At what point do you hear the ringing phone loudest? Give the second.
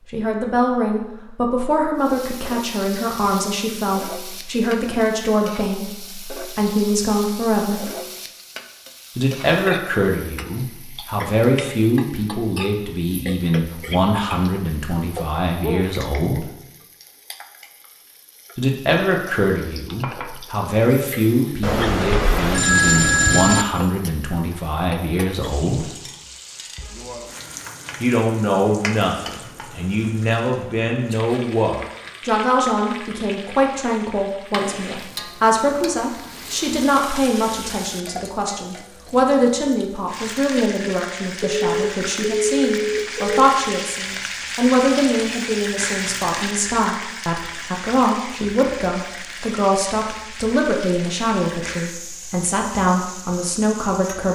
23 s.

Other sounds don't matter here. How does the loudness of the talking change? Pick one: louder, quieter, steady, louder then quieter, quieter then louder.
steady.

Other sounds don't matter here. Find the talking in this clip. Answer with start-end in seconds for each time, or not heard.
0.1-7.9, 9.2-16.5, 18.6-25.9, 28.0-54.3.